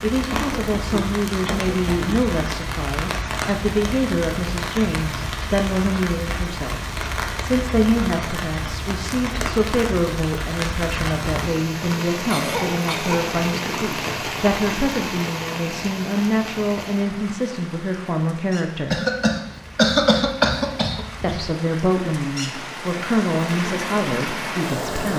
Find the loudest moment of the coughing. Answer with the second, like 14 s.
20 s.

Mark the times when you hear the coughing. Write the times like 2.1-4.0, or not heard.
0.3-2.1, 12.2-13.3, 18.9-21.4.